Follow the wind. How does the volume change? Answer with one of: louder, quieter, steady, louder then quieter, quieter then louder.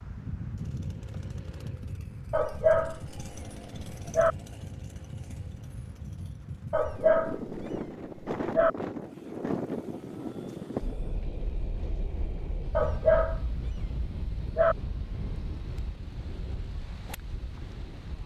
louder then quieter.